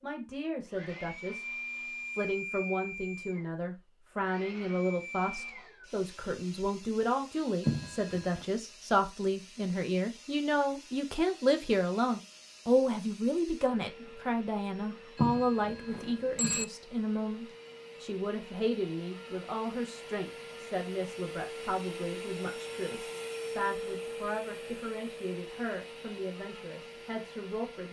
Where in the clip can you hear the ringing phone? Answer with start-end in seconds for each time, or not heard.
7.7-8.4, 15.2-16.6.